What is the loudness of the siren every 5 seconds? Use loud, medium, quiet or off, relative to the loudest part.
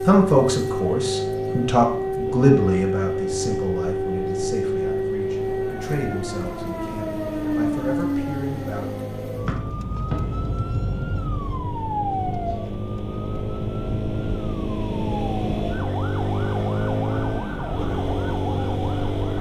loud, loud, medium, medium.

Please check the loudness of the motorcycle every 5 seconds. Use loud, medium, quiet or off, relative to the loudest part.
medium, medium, medium, loud.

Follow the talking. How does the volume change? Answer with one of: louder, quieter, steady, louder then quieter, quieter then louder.
quieter.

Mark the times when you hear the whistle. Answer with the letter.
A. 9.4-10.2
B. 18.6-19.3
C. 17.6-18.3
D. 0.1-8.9
A.